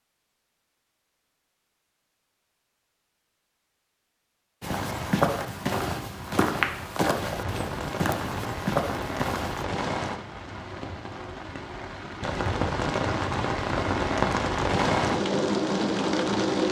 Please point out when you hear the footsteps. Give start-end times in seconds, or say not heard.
4.6-9.7.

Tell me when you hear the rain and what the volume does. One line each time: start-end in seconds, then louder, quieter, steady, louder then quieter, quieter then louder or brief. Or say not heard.
4.7-16.6 louder.